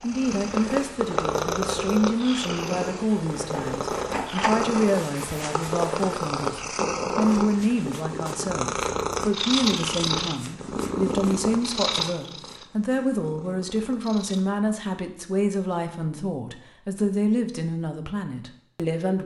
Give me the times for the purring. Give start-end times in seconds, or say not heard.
0.0-14.4.